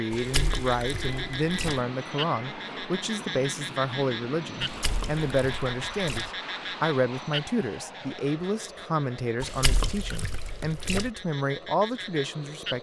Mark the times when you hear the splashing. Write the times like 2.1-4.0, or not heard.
0.1-1.8, 4.6-6.3, 9.4-11.1.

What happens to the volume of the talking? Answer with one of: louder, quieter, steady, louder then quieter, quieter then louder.
steady.